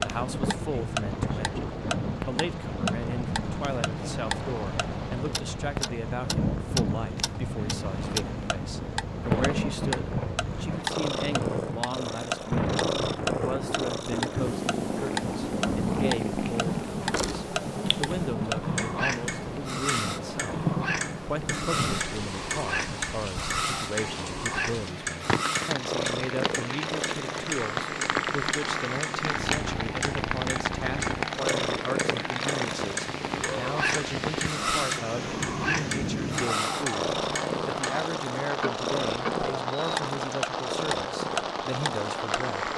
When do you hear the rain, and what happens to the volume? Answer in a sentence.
You can hear the rain from 0.0 to 42.7 s, at a steady volume.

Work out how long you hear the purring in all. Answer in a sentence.
You can hear the purring for 43 seconds altogether.